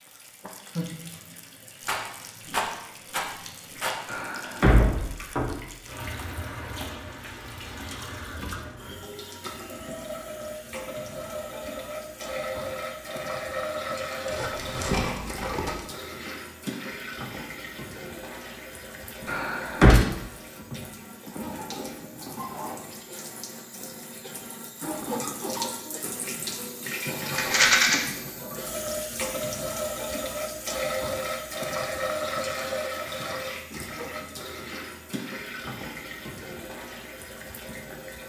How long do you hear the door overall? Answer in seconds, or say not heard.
2 s.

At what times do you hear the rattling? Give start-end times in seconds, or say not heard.
1.9-4.0, 14.2-15.8, 27.4-27.9.